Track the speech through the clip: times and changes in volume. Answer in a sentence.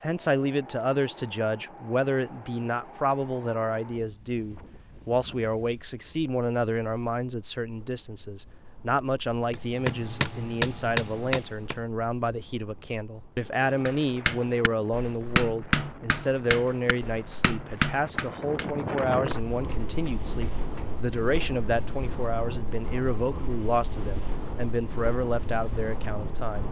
The speech can be heard from 0.0 to 26.6 s, at a steady volume.